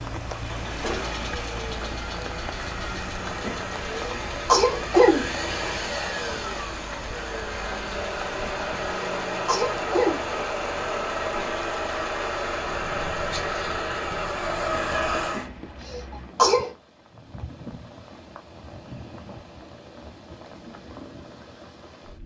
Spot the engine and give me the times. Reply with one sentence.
You can hear the engine from 0.1 to 15.5 s.